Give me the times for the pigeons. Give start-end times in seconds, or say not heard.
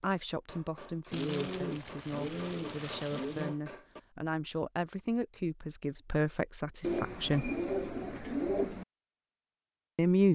1.1-3.5, 6.8-8.8.